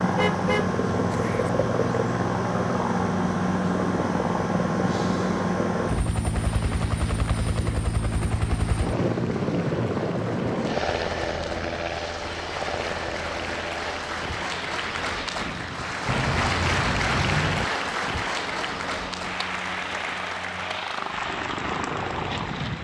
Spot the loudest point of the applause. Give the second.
17 s.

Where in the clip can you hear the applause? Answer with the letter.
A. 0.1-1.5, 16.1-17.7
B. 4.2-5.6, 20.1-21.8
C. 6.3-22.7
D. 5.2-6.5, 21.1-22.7
C.